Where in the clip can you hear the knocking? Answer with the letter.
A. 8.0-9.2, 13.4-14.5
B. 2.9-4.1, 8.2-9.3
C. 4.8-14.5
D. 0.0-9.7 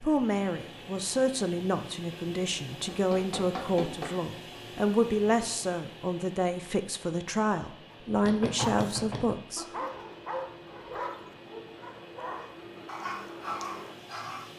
B.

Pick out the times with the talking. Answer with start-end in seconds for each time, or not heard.
0.0-9.7.